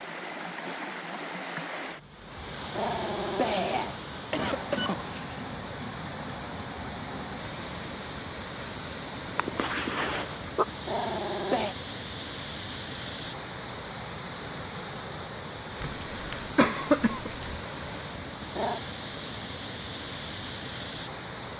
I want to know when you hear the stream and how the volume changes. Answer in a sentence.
You can hear the stream from 0.0 to 21.5 s, at a steady volume.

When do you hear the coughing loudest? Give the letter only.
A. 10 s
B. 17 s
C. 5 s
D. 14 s
B.